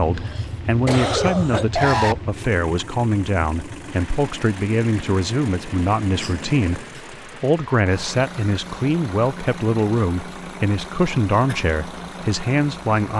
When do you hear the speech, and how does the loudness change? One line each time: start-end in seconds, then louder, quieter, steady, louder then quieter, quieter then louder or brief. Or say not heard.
0.0-13.1 steady.